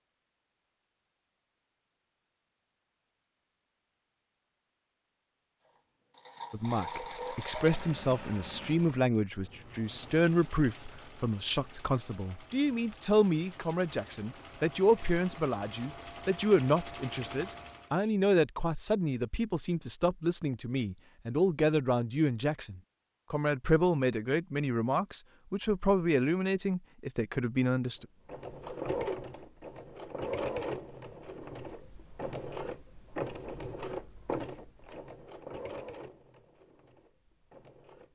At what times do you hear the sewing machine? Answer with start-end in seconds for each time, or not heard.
6.2-17.9, 28.1-38.1.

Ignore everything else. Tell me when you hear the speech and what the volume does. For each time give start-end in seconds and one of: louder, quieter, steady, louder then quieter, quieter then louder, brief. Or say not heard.
6.5-28.1 steady.